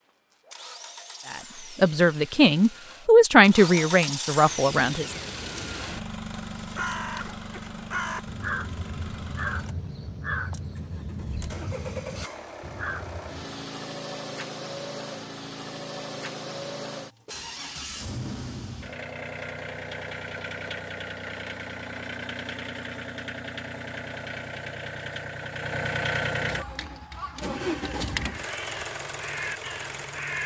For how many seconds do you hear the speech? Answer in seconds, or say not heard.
4 s.